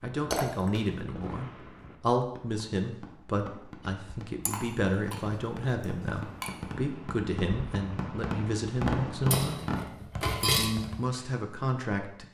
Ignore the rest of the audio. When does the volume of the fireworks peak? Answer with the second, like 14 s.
9 s.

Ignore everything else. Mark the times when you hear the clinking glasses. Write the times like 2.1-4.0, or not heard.
0.3-0.8, 4.5-5.2, 5.8-6.5, 9.3-10.7.